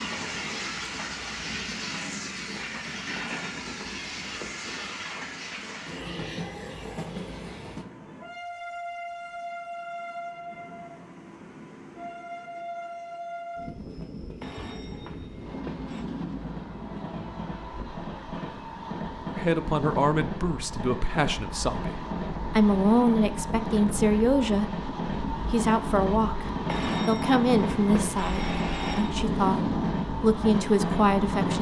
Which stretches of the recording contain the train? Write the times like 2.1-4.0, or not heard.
0.0-31.5.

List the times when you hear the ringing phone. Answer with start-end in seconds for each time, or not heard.
3.1-4.7, 14.4-16.1, 26.6-29.1.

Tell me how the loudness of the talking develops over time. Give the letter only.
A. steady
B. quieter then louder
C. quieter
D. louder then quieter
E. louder
A.